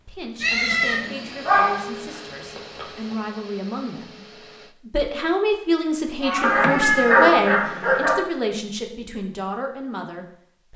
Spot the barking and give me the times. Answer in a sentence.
You can hear the barking from 1.4 to 3.1 s and from 6.4 to 8.2 s.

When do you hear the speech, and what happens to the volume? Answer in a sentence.
The speech can be heard from 0.1 to 10.7 s, getting louder then quieter.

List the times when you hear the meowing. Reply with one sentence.
You can hear the meowing from 0.4 to 1.0 s and from 6.2 to 7.3 s.